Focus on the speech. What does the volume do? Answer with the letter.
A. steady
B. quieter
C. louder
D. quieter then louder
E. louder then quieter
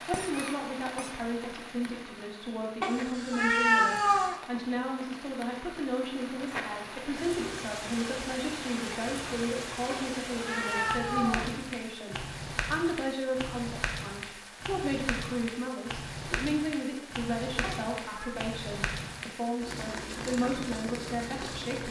A.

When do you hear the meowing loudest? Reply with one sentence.
The volume of the meowing peaks at 4 seconds.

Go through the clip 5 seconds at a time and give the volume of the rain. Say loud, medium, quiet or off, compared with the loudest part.
medium, loud, loud, loud, loud.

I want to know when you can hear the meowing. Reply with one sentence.
You can hear the meowing from 2.8 to 4.3 s, from 9.8 to 11.6 s and from 17.6 to 18.3 s.